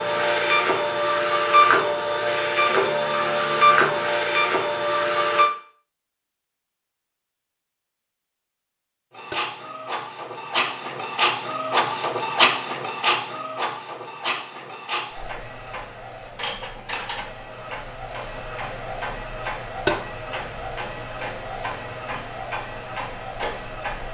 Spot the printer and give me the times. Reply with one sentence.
The printer can be heard from 0.0 to 5.5 s and from 9.1 to 24.1 s.